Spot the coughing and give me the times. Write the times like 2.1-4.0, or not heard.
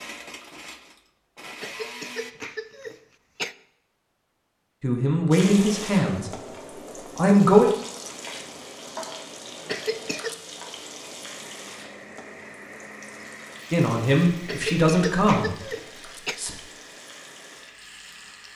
1.6-3.5, 9.7-10.3, 14.4-16.4.